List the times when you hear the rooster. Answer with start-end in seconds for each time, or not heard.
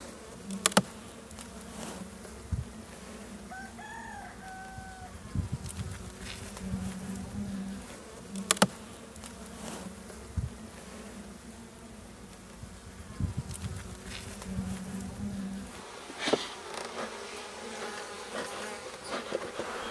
3.5-5.2.